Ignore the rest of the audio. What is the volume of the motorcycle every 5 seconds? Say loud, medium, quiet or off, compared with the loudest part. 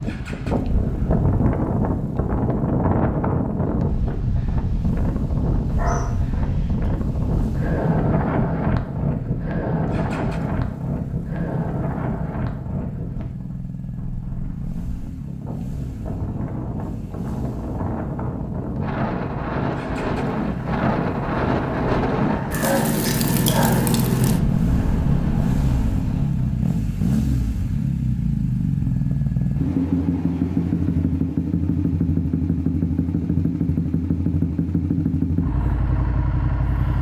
medium, medium, medium, medium, loud, loud, loud, loud.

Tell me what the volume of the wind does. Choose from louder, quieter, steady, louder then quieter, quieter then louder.
quieter then louder.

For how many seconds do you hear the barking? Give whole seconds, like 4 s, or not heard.
3 s.